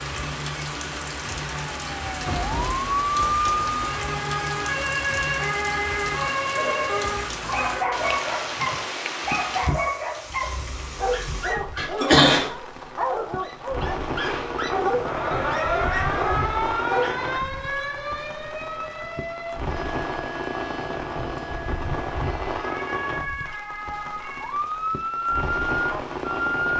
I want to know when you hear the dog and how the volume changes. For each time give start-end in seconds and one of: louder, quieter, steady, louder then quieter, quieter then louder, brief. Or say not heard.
6.5-17.4 steady.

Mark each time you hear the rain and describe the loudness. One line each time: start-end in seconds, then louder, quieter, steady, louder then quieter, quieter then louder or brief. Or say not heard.
0.0-26.7 steady.